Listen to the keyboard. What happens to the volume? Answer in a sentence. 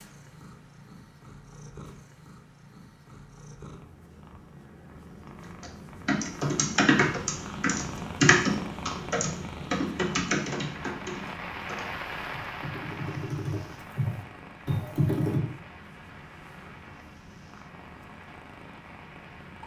The volume of the keyboard goes down, then up.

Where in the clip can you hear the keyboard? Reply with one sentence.
You can hear the keyboard from 5.2 to 15.4 s.